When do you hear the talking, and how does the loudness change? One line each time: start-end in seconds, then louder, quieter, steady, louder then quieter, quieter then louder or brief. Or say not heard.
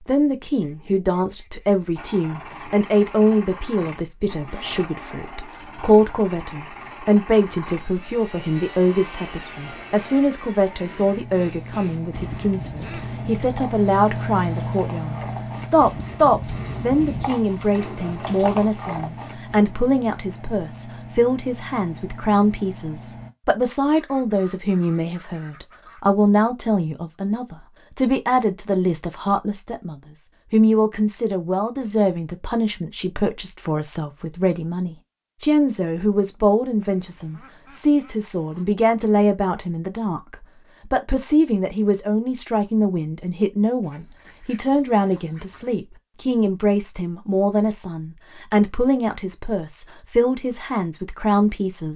0.1-51.9 steady.